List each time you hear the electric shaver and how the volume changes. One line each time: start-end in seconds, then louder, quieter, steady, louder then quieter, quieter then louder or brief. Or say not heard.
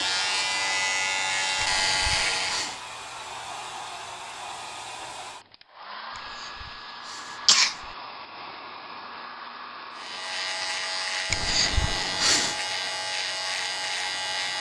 0.0-2.8 brief
9.9-14.5 steady.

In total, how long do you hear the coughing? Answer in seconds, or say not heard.
4 s.